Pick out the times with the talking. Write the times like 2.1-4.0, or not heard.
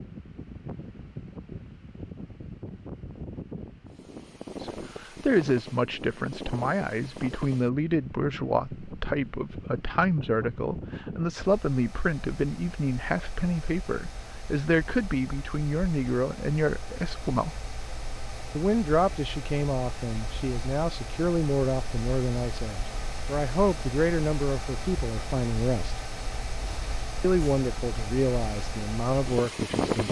4.6-17.6, 18.6-26.0, 27.2-30.0.